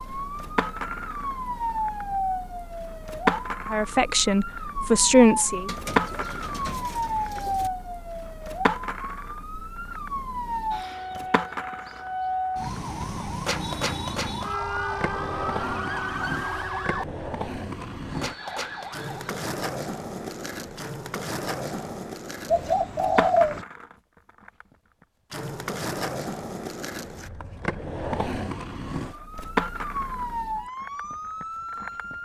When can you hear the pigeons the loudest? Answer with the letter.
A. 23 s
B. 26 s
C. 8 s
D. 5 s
A.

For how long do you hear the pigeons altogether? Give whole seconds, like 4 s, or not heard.
3 s.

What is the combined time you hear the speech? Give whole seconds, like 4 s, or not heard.
2 s.